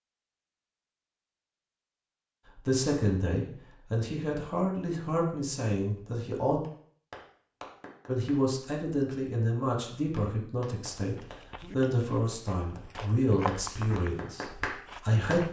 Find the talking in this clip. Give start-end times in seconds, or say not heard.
2.5-6.6, 8.1-15.4.